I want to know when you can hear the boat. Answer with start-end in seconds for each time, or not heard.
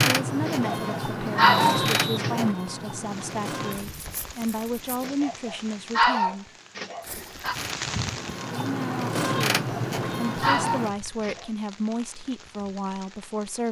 0.0-5.0, 7.0-10.9.